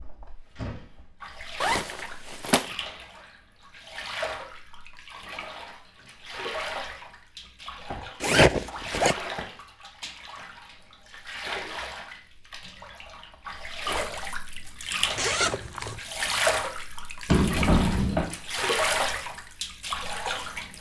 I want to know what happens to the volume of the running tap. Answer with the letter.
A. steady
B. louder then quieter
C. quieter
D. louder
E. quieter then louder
D.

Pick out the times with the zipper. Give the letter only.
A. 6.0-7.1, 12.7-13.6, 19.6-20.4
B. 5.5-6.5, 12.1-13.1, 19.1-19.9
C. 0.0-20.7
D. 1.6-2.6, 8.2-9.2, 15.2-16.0
D.